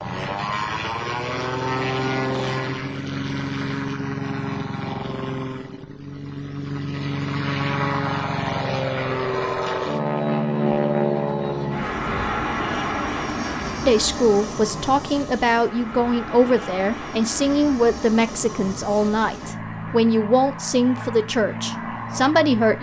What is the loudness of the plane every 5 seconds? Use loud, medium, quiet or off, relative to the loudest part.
loud, loud, loud, medium, medium.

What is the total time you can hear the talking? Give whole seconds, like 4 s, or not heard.
9 s.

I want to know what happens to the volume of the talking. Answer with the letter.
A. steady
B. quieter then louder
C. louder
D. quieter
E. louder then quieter
A.